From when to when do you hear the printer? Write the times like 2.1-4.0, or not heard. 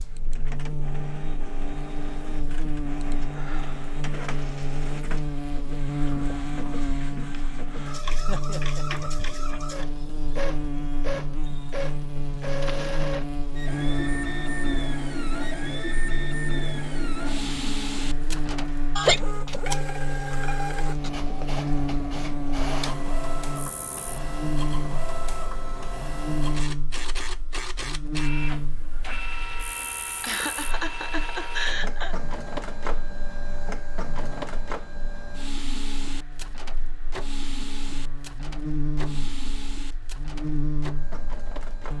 0.0-41.9.